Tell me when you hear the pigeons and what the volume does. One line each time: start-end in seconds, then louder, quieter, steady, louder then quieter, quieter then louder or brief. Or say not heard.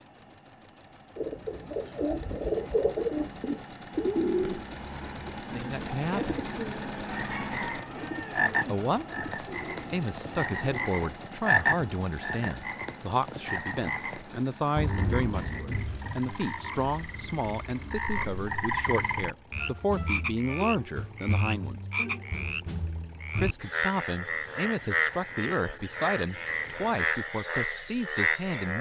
1.1-10.9 quieter.